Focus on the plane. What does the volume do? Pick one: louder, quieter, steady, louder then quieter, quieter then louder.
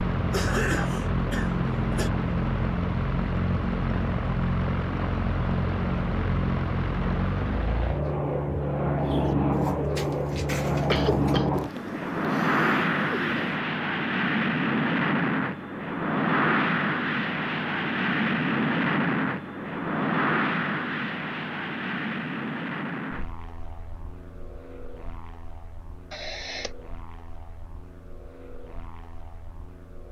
quieter.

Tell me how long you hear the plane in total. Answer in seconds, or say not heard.
30 s.